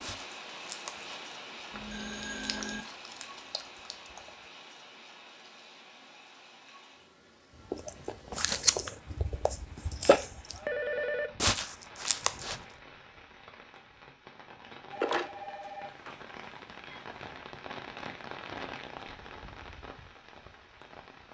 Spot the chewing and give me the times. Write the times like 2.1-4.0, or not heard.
0.0-1.2, 2.2-4.3, 7.7-10.6, 11.4-12.6.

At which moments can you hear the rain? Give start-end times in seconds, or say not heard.
0.0-21.2.